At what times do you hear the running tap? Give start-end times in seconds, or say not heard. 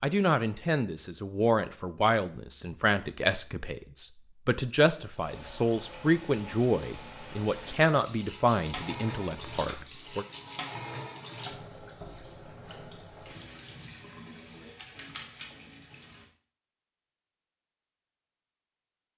5.2-16.3.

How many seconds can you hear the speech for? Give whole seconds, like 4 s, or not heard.
10 s.